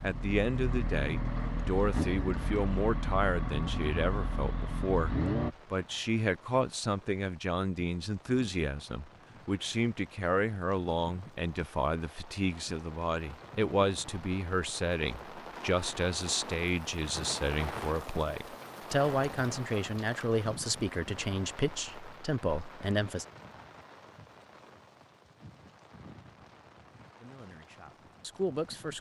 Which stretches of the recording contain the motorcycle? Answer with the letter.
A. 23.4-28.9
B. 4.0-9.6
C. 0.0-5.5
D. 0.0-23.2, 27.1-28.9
C.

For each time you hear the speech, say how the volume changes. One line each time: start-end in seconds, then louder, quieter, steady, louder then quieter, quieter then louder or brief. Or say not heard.
0.0-23.2 steady
27.1-28.9 brief.